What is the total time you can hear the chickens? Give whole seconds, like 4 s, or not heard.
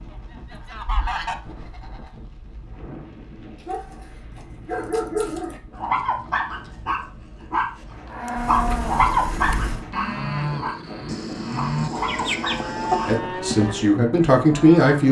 4 s.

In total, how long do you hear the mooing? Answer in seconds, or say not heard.
7 s.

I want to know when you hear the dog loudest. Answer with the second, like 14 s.
9 s.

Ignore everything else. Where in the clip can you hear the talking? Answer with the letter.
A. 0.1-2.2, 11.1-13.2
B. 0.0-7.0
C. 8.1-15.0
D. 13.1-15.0
D.